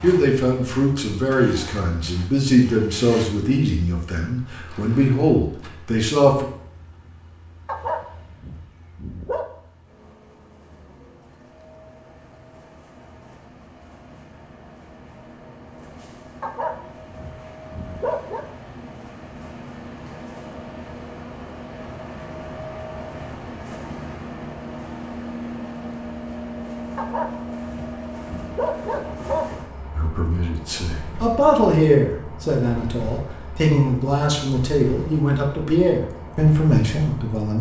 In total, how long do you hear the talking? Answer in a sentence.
The talking can be heard for 14 seconds in total.